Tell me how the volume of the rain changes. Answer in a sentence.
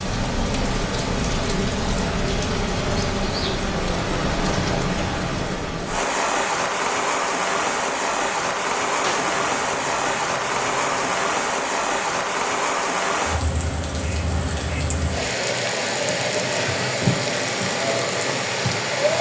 The volume of the rain stays about the same.